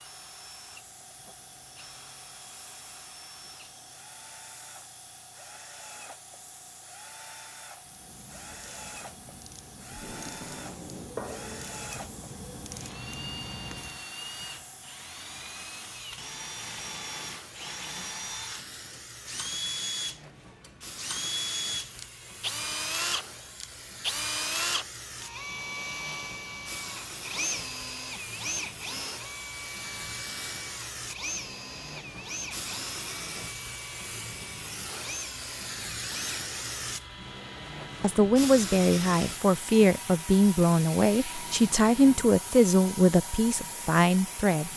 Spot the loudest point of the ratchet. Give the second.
11 s.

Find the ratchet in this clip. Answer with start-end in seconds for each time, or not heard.
7.8-14.0.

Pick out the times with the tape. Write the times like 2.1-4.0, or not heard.
9.9-11.2.